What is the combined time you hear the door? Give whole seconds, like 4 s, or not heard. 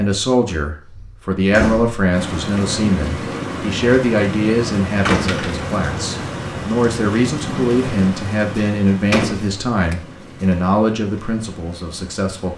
4 s.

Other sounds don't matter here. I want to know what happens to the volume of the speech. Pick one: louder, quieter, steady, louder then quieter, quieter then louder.
steady.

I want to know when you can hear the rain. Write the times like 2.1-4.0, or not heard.
2.1-12.5.